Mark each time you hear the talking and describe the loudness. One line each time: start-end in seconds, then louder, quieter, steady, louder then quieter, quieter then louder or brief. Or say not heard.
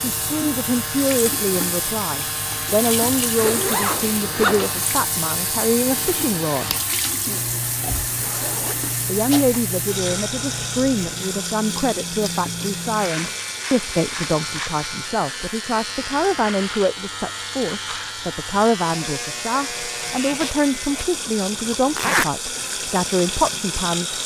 0.0-6.8 steady
9.1-24.2 steady.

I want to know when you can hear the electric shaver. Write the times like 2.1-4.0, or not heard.
0.0-21.1.